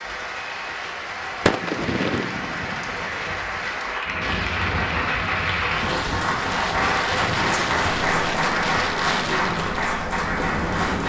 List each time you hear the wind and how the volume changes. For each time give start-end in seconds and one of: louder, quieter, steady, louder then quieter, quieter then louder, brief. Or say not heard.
4.0-11.0 steady.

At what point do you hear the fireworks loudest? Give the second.
2 s.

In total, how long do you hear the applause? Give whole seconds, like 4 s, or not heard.
11 s.